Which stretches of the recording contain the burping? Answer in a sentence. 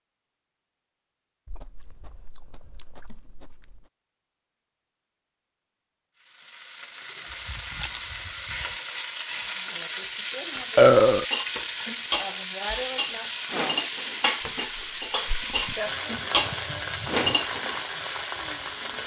The burping can be heard from 10.8 to 11.2 s.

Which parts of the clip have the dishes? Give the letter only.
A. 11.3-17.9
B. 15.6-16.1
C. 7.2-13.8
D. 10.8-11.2
A.